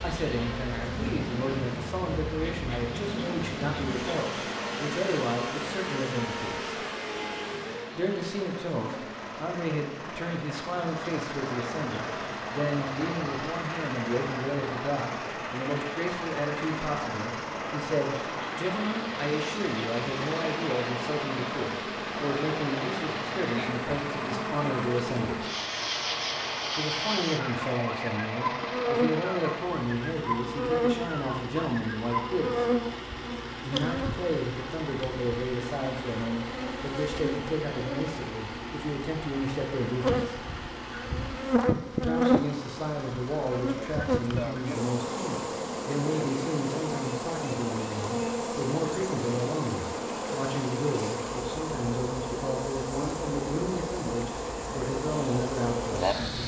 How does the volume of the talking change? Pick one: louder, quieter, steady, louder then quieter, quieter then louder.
steady.